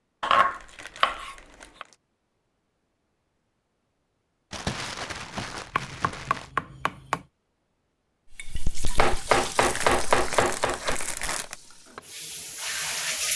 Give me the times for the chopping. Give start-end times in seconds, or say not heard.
0.2-1.9, 5.7-7.2, 8.9-11.0.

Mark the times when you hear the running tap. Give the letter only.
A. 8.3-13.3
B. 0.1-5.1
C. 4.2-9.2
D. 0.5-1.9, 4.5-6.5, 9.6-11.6
A.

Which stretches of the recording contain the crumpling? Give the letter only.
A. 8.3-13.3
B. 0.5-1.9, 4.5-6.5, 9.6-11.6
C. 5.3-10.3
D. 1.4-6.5
B.